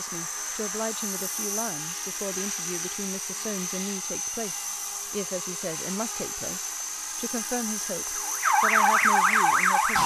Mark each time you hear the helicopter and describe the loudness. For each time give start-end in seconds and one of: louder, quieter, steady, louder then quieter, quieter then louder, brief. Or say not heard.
0.0-10.0 steady.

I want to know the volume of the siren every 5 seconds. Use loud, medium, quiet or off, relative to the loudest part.
off, loud.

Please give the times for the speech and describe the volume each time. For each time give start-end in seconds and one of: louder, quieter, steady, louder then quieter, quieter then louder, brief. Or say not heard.
0.0-10.0 steady.